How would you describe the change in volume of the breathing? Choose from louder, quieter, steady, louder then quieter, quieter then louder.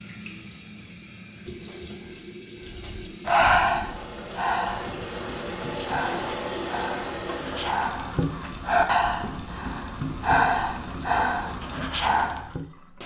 quieter then louder.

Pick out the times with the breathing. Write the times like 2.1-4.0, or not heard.
2.6-12.7.